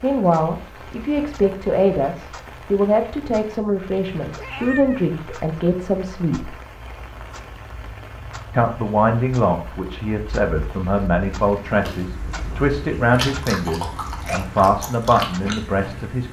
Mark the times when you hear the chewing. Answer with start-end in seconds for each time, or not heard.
11.8-15.8.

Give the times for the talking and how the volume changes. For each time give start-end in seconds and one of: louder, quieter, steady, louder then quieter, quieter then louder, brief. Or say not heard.
0.0-6.5 steady
8.5-16.2 steady.